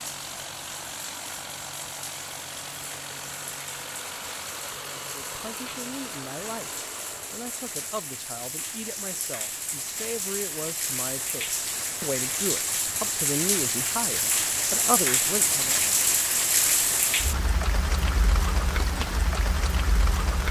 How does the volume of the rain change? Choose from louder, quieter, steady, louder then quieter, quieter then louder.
louder.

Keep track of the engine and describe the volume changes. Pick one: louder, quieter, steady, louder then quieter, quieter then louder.
steady.